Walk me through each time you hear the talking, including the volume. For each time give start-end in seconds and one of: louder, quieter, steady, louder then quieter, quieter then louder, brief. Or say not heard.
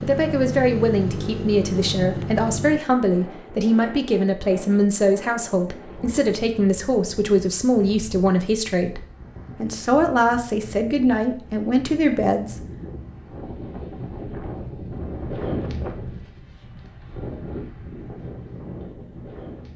0.0-12.6 steady.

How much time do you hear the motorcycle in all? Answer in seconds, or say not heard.
3 s.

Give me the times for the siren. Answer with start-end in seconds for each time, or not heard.
not heard.